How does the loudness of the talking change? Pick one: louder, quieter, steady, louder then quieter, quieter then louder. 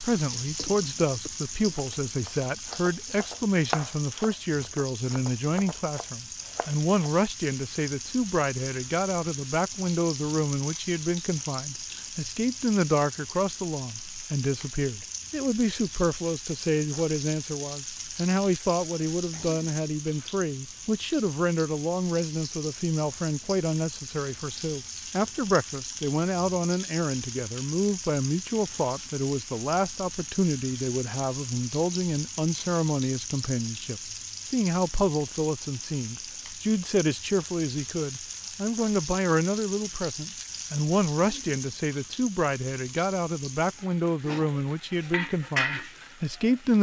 steady.